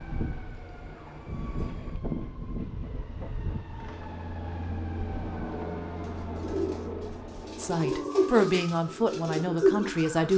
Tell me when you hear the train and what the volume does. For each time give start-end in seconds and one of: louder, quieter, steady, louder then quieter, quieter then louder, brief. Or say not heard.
0.0-7.8 louder.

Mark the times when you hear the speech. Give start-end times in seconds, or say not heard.
7.5-10.3.